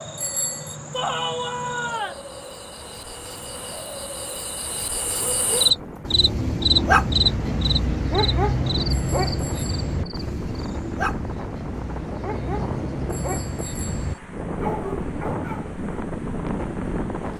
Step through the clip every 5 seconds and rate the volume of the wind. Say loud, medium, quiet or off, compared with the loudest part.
medium, medium, loud, loud.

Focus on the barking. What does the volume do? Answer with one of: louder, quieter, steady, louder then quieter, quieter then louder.
quieter.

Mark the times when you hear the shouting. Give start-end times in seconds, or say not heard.
0.9-2.2.